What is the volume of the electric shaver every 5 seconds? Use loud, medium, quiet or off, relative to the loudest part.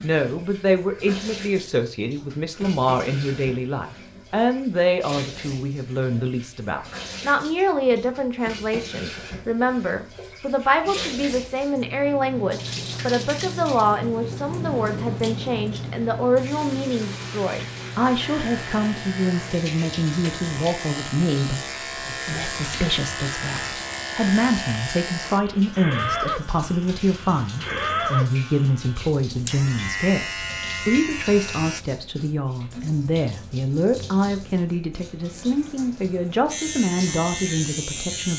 off, off, off, medium, loud, loud, loud, loud.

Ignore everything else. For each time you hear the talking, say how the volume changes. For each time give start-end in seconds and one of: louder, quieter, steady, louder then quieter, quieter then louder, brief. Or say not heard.
0.0-38.3 steady.